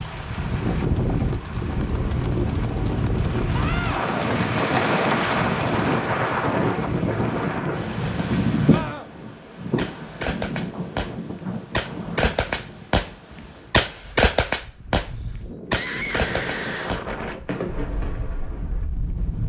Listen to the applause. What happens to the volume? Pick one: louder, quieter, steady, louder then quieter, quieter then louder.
louder then quieter.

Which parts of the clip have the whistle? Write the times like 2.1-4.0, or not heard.
not heard.